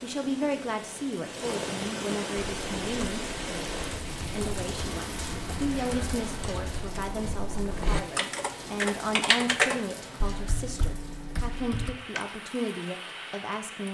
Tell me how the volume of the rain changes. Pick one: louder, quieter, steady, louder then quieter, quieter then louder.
quieter.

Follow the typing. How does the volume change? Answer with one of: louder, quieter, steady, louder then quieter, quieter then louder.
louder then quieter.